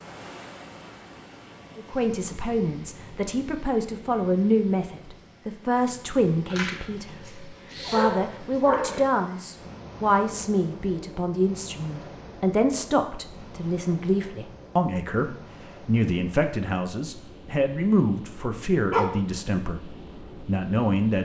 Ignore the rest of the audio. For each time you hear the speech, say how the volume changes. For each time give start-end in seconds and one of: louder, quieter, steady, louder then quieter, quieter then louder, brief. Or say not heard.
1.8-21.2 steady.